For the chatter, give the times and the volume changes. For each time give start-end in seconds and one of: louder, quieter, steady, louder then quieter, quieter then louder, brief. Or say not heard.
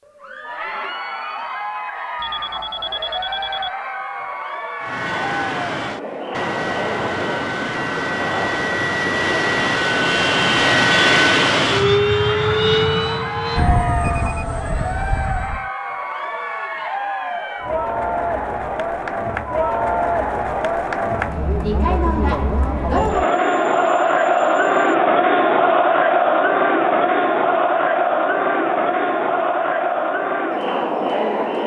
0.1-31.6 louder.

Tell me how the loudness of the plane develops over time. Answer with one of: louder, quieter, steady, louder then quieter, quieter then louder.
louder then quieter.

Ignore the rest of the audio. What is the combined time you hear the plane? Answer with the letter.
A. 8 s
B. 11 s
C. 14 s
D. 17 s
B.